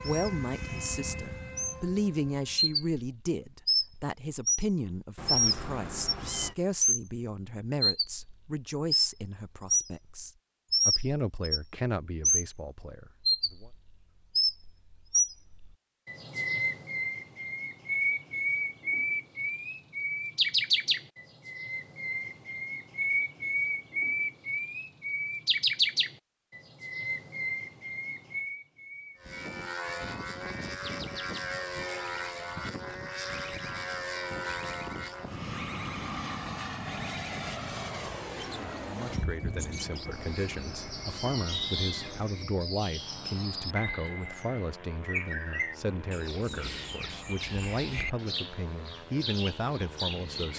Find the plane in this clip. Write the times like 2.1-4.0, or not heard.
0.0-3.0, 29.1-50.5.